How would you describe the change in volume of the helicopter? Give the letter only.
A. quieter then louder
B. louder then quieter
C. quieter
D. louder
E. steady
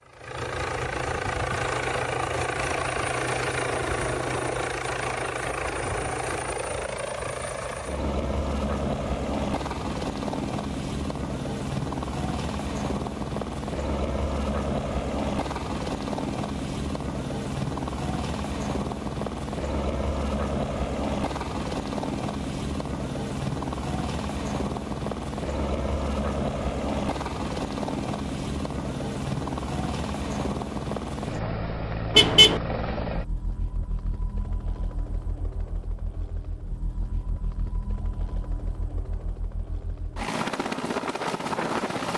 C.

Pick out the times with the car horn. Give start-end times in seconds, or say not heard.
32.1-32.6.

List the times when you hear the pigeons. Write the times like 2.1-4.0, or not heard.
not heard.